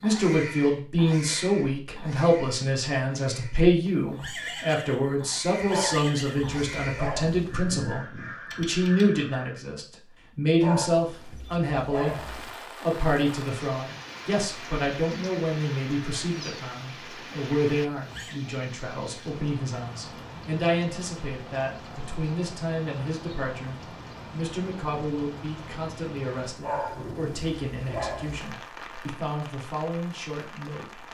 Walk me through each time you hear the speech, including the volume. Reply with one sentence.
You can hear the speech from 0.0 to 31.0 s, getting quieter.